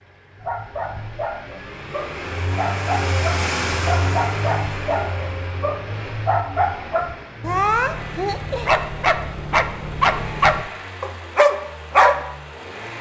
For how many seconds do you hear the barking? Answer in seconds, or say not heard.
12 s.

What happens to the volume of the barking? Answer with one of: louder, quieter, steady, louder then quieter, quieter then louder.
louder.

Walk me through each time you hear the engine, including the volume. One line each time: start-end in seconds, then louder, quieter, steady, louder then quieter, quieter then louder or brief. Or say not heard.
0.0-12.9 louder then quieter.